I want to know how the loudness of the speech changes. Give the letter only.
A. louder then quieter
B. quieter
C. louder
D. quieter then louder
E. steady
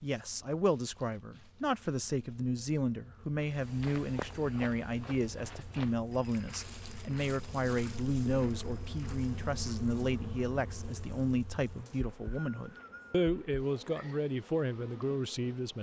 E.